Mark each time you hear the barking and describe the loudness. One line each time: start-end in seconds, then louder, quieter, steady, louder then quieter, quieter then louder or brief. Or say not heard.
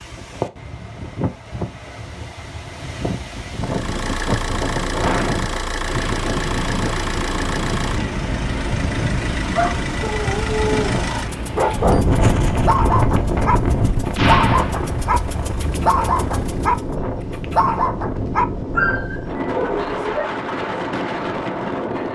9.6-20.3 steady.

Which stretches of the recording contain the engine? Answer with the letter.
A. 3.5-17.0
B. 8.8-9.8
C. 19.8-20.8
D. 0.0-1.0
A.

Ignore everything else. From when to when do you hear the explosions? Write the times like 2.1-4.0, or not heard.
14.2-15.2.